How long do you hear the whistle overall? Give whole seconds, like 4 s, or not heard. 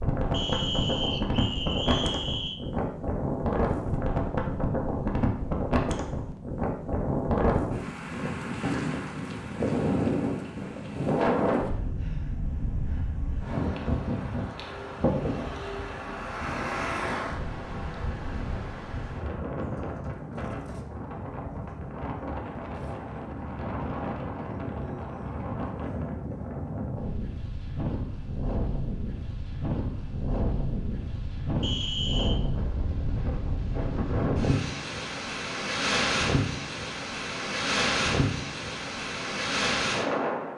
3 s.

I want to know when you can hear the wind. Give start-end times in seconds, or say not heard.
0.0-40.5.